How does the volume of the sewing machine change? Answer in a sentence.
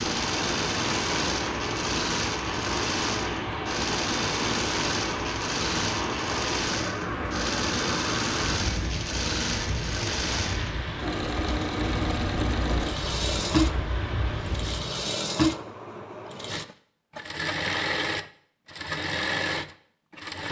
The loudness of the sewing machine stays about the same.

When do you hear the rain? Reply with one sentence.
The rain can be heard from 0.0 to 15.1 s.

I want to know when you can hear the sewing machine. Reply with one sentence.
You can hear the sewing machine from 0.0 to 20.4 s.